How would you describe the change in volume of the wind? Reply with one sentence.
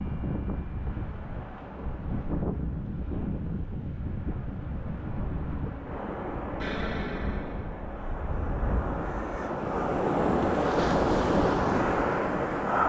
The loudness of the wind goes up.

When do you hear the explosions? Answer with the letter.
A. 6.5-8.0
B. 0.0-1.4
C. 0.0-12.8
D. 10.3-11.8
A.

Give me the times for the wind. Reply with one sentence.
You can hear the wind from 0.0 to 12.8 s.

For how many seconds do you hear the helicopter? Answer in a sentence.
You can't hear the helicopter here.